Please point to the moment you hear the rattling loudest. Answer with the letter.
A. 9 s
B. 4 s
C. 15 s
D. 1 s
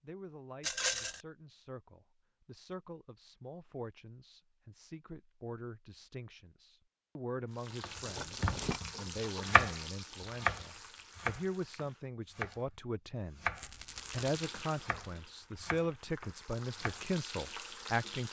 D.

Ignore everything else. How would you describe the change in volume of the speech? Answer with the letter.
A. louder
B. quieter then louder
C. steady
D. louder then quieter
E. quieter
A.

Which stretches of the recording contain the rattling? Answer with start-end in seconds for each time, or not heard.
0.6-1.2, 8.1-8.8, 13.6-14.5.